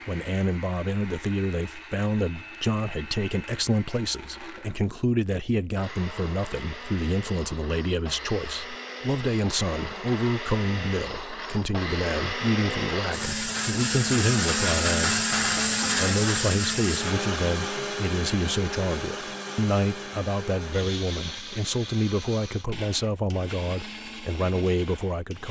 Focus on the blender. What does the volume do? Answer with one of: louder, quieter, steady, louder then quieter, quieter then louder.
louder then quieter.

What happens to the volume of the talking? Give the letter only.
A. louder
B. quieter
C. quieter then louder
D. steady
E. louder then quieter
D.